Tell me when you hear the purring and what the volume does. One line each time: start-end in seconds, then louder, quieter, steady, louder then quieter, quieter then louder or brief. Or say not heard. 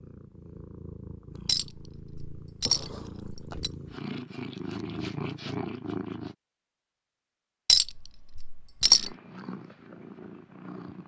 0.0-6.3 louder
8.8-11.0 brief.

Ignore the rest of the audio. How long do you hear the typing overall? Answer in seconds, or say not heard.
not heard.